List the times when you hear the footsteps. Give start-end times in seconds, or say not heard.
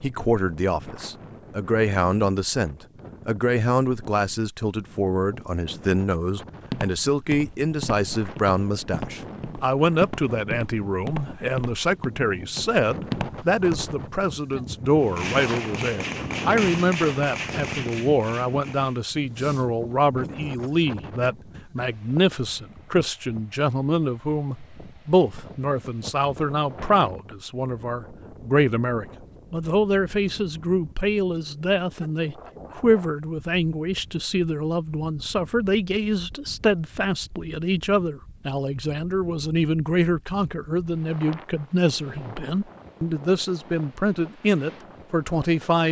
6.7-14.3.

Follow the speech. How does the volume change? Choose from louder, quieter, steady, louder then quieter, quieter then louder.
steady.